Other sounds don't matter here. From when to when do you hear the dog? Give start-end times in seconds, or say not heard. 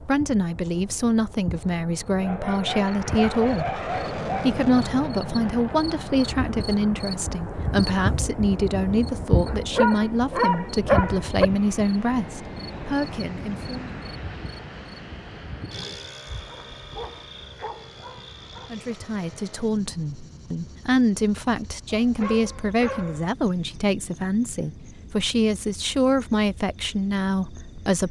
2.1-4.6, 9.4-11.5, 16.2-18.8, 21.9-23.2.